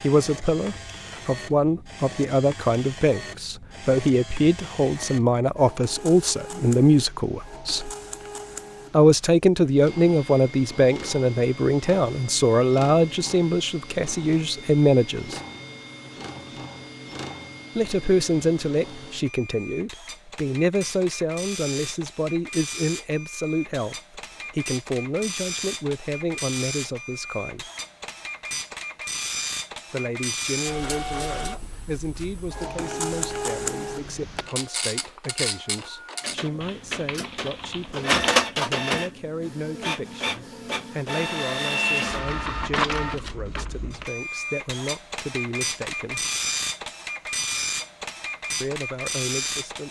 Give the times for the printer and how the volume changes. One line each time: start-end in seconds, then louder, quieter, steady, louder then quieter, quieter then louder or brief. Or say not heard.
0.0-49.8 louder.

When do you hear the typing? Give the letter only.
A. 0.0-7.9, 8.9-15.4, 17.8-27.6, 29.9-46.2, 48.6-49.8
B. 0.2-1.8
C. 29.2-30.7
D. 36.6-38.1
D.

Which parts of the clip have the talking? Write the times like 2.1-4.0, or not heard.
0.0-7.9, 8.9-15.4, 17.8-27.6, 29.9-46.2, 48.6-49.8.